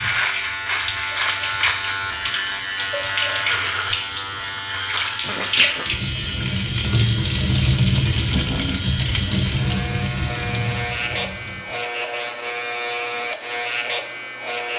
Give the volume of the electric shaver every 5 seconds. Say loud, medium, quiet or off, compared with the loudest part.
loud, medium, loud.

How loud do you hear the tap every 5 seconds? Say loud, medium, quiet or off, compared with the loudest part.
medium, loud, medium.